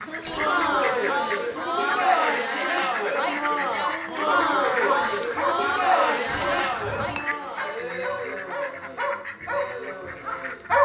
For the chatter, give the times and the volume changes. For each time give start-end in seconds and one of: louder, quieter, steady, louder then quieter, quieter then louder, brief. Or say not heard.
0.1-10.8 quieter.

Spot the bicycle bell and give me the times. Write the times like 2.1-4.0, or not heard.
0.2-0.8, 6.2-7.3.